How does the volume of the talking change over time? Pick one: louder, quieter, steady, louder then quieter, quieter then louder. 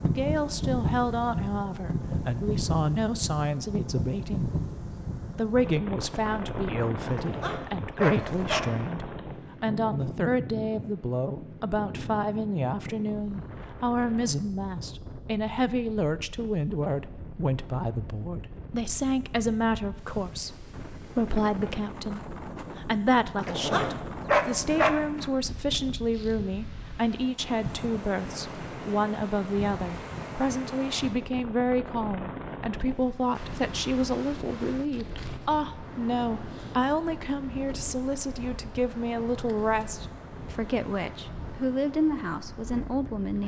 steady.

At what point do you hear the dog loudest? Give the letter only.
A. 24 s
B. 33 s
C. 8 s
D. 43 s
A.